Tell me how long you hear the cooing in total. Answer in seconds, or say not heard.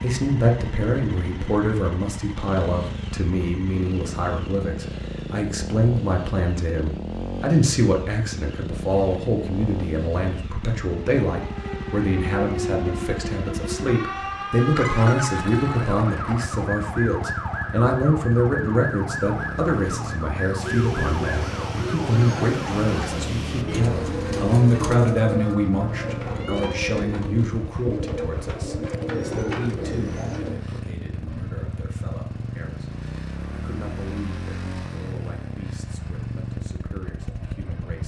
10 s.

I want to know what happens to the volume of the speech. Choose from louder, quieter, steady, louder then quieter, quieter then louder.
quieter.